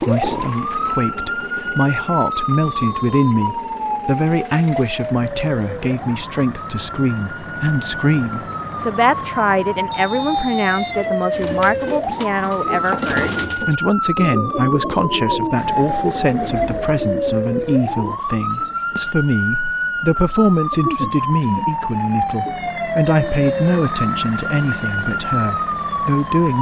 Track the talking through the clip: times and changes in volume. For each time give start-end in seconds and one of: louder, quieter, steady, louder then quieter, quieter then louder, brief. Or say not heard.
0.0-26.5 steady.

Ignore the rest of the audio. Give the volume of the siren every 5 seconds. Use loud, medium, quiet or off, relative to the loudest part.
loud, medium, loud, loud, loud, loud.